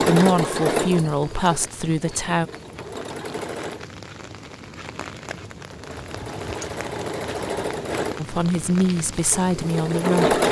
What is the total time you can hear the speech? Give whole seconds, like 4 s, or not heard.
5 s.